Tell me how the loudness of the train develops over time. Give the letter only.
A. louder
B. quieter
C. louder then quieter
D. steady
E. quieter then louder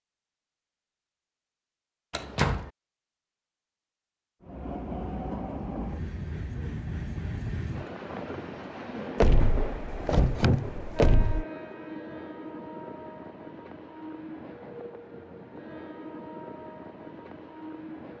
B.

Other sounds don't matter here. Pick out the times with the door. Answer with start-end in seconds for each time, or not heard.
2.1-2.7, 9.2-11.4.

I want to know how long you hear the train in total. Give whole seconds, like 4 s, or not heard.
14 s.